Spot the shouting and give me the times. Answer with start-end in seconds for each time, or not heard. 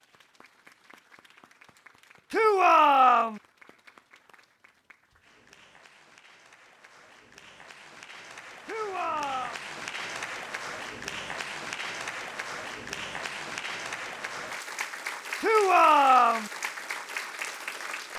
2.3-3.4, 8.7-9.6, 15.4-16.5.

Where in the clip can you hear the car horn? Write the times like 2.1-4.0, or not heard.
not heard.